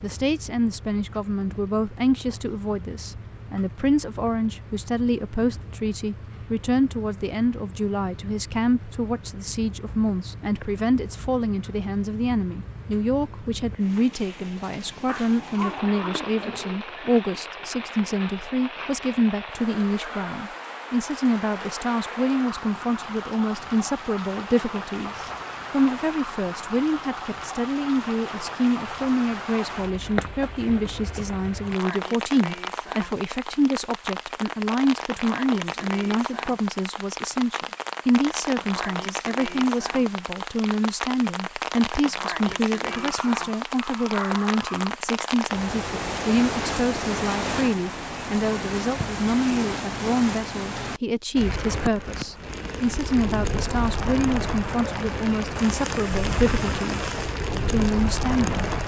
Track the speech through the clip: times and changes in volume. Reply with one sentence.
You can hear the speech from 0.0 to 58.6 s, at a steady volume.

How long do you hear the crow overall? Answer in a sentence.
The crow can't be heard in this clip.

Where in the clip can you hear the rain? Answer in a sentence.
The rain can be heard from 0.0 to 58.8 s.